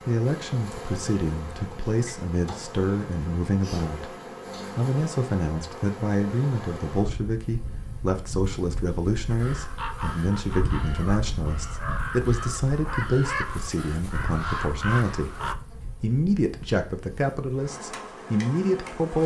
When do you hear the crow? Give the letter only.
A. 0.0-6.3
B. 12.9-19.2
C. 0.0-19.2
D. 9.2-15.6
D.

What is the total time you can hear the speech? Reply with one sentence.
The speech can be heard for 19 seconds in total.